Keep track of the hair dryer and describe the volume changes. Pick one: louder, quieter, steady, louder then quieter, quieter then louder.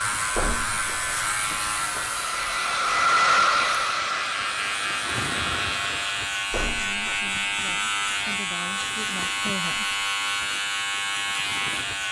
louder then quieter.